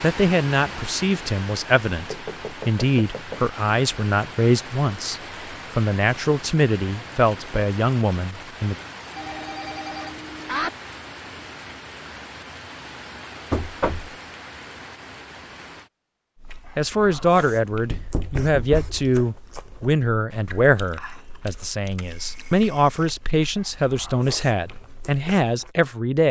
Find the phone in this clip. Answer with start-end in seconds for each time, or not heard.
9.2-10.7, 21.4-23.1.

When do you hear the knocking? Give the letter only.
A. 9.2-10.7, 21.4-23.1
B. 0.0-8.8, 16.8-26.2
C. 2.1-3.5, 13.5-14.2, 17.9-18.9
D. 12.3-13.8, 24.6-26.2
C.